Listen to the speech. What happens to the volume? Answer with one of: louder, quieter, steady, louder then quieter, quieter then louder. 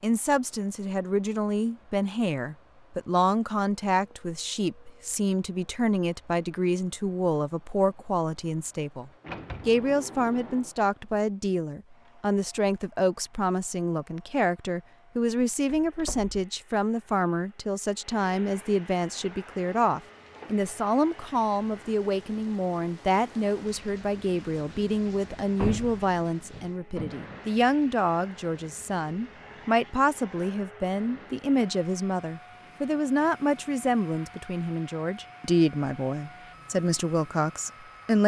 steady.